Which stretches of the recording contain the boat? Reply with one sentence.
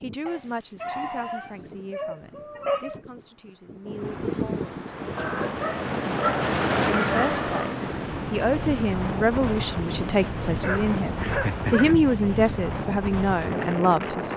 The boat can be heard from 4.8 to 11.3 s.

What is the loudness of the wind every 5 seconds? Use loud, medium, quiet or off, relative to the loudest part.
medium, loud, loud.